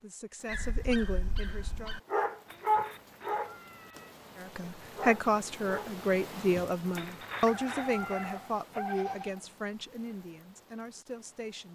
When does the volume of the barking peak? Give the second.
3 s.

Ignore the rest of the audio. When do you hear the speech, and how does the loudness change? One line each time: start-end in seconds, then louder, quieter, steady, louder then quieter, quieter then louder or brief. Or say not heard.
0.0-1.9 brief
4.3-11.6 quieter.